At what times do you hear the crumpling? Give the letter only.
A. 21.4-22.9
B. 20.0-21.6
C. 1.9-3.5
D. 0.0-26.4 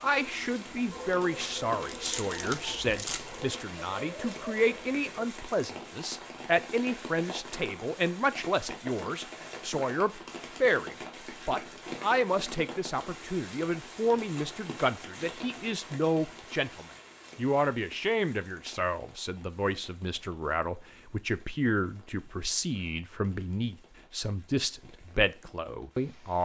C.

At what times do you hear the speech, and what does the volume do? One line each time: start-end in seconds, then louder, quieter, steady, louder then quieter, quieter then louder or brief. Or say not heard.
0.0-26.4 steady.